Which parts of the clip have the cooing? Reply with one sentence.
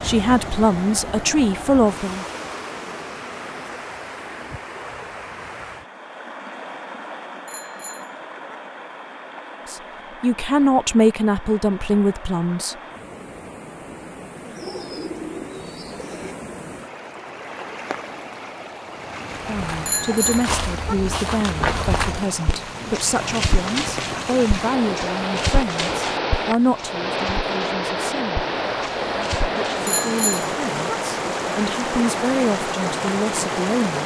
You can hear the cooing from 14.4 to 16.4 s.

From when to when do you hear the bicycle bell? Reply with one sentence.
The bicycle bell can be heard from 7.5 to 8.6 s, from 19.9 to 20.9 s and from 29.9 to 30.9 s.